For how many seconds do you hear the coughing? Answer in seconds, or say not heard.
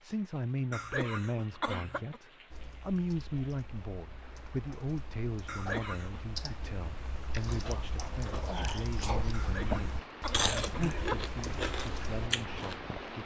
4 s.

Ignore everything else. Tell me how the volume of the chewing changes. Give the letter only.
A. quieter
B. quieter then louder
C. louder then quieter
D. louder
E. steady
D.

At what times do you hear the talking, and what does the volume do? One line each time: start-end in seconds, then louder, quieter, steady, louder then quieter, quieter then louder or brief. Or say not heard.
0.0-13.2 quieter.